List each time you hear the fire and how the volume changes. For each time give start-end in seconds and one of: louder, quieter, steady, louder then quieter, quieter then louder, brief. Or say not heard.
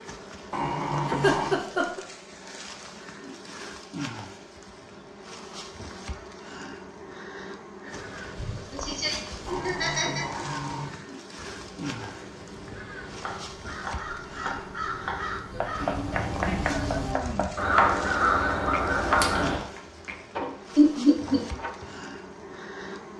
not heard.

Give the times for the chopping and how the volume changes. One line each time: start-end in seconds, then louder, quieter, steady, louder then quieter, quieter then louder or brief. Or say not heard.
12.7-22.0 louder then quieter.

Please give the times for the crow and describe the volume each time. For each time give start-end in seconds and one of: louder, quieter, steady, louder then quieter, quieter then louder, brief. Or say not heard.
7.9-19.6 louder.